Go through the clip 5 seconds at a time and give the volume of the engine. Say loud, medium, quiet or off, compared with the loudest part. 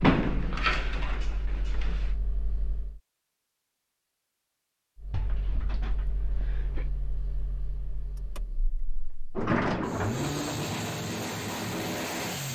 quiet, quiet, loud.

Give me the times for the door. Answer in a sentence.
You can hear the door from 0.0 to 2.0 s, from 5.1 to 6.9 s and from 9.3 to 10.7 s.